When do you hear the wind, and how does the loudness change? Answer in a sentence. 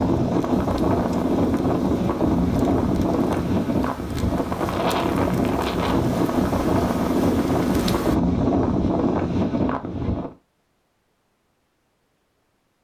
You can hear the wind from 0.0 to 10.3 s, at a steady volume.